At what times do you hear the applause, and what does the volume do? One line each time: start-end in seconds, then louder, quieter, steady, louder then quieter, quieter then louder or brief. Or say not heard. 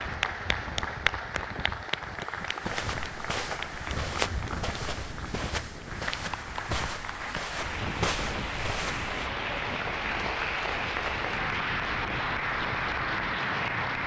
0.0-14.0 quieter then louder.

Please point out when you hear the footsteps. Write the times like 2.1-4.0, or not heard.
2.6-9.3.